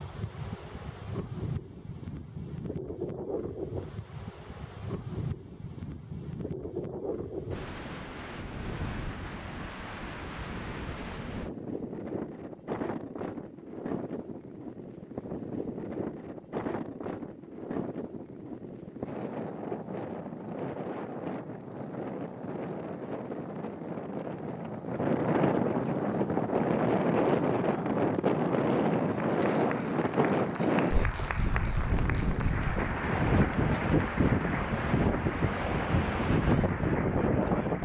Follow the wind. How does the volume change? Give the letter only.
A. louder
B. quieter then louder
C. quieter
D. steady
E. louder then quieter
A.